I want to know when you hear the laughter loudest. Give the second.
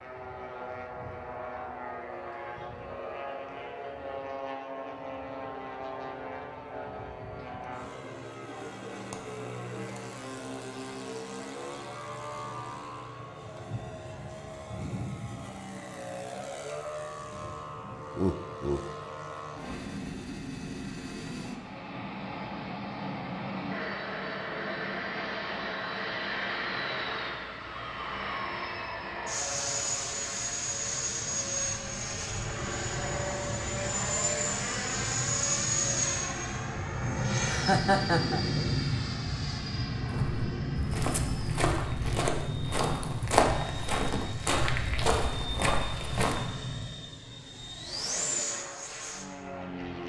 38 s.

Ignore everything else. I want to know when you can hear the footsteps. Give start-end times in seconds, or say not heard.
40.1-46.5.